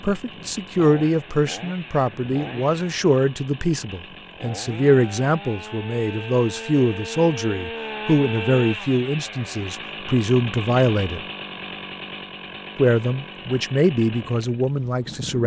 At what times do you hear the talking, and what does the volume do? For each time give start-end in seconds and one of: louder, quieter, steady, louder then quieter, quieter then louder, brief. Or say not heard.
0.0-11.2 steady
12.8-15.4 brief.